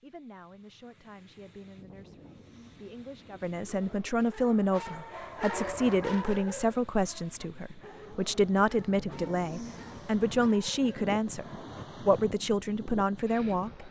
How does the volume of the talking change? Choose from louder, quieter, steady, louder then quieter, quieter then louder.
louder.